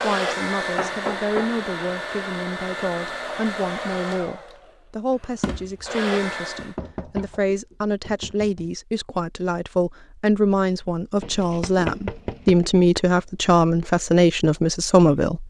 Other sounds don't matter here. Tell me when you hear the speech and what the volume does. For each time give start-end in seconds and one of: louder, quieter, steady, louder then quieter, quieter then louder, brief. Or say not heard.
0.0-15.4 louder.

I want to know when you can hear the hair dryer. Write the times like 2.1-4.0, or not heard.
0.0-6.8.